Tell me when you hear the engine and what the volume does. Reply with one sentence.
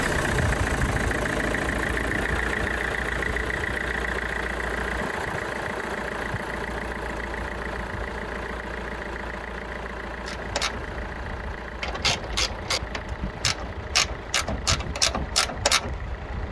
The engine can be heard from 0.0 to 16.4 s, getting quieter.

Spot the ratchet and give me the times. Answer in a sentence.
You can hear the ratchet from 10.2 to 16.4 s.